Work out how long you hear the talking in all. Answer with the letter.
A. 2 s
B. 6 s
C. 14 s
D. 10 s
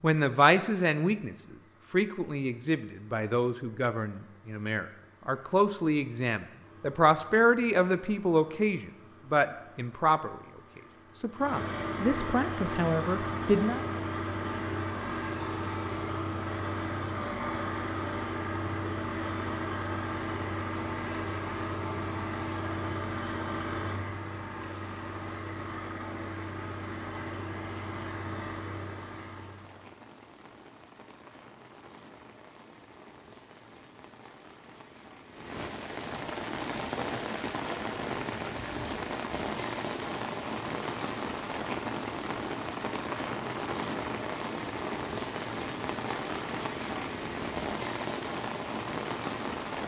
C.